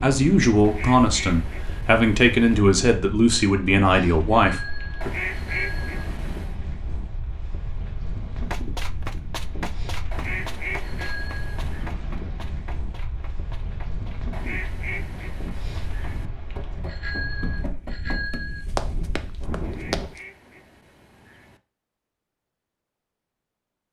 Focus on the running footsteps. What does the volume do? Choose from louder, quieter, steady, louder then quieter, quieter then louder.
quieter then louder.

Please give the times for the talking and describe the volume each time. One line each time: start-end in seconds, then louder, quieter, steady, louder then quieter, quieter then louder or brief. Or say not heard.
0.0-5.1 steady.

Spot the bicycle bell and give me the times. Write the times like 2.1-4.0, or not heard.
4.4-6.0, 10.8-11.6, 16.9-18.6.